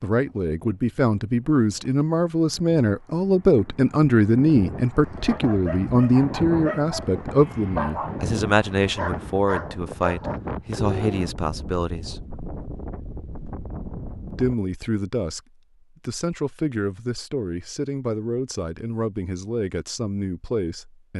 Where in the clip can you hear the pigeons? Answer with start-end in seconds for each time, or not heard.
not heard.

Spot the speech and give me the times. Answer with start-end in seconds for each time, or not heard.
0.0-12.2, 14.3-15.4, 16.1-21.1.